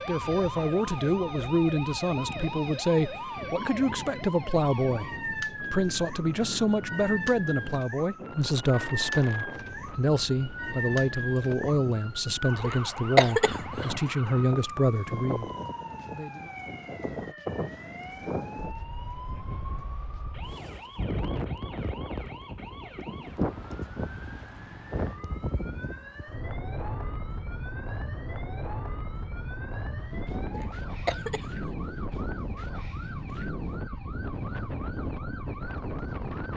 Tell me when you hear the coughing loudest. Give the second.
13 s.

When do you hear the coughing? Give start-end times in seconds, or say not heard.
12.6-13.9, 30.5-31.7.